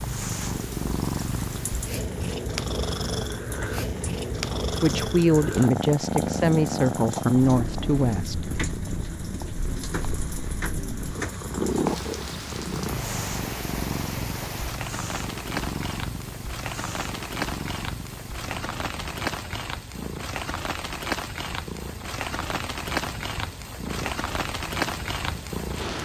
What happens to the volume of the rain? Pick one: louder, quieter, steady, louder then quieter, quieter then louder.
louder.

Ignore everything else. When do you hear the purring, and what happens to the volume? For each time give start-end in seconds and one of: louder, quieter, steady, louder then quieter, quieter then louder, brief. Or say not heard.
0.0-26.0 quieter.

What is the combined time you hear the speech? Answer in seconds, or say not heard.
4 s.